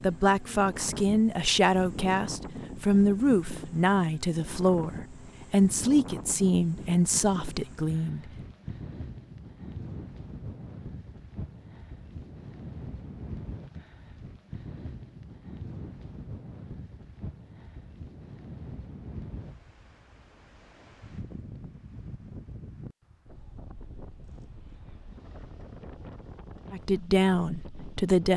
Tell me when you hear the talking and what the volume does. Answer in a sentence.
The talking can be heard from 0.0 to 8.2 s, at a steady volume; and briefly from 26.7 to 28.3 s.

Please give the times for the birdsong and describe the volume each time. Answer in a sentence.
The birdsong can't be heard in this clip.